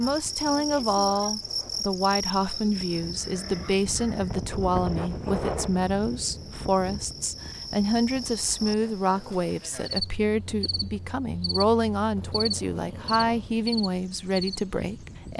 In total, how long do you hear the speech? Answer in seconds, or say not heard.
15 s.